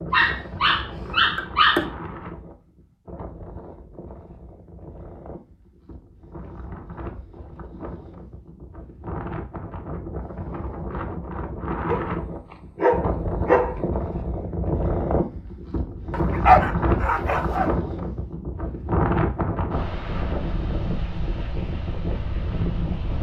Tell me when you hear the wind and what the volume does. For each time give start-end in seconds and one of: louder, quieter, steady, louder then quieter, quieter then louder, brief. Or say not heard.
0.0-23.1 louder.